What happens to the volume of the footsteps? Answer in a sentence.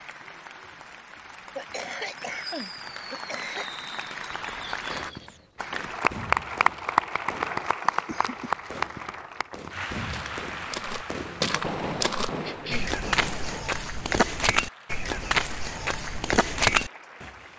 The loudness of the footsteps goes up.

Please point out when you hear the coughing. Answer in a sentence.
You can hear the coughing from 1.6 to 3.6 s, from 7.8 to 8.6 s and from 12.4 to 13.0 s.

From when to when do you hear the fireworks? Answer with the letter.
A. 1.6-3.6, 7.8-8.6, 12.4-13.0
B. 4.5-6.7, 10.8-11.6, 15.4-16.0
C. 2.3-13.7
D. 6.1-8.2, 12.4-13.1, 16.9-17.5
C.